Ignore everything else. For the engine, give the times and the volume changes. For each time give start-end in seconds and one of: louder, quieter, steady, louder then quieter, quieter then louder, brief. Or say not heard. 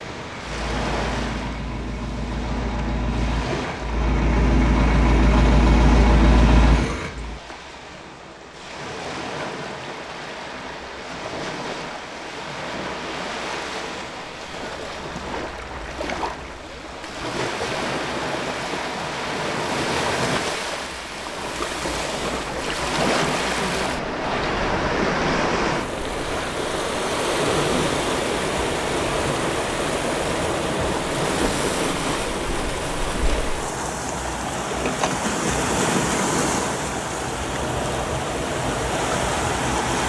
0.0-7.4 louder.